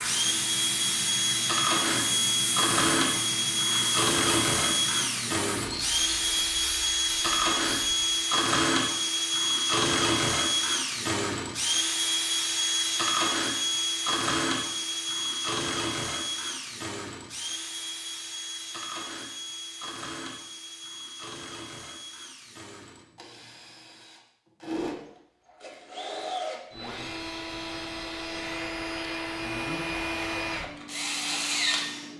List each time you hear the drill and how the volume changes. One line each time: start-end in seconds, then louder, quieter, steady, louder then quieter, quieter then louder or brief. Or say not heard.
0.0-32.1 quieter then louder.